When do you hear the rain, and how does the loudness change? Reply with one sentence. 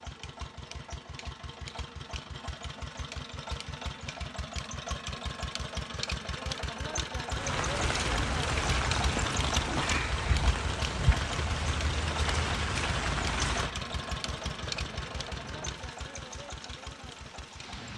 You can hear the rain from 7.3 to 17.9 s, getting quieter.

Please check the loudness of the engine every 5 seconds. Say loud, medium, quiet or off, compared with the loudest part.
medium, loud, loud, medium.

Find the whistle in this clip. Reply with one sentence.
The whistle can't be heard in this clip.